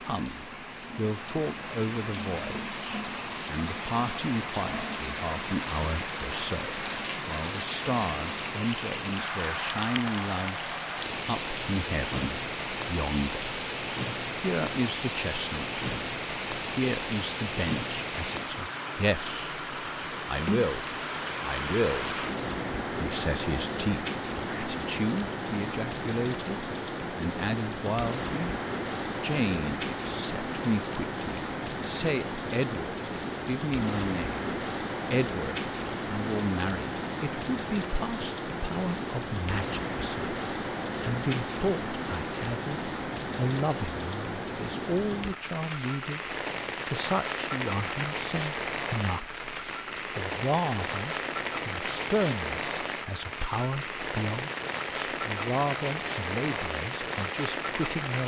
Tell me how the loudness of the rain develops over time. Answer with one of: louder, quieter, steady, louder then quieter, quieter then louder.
steady.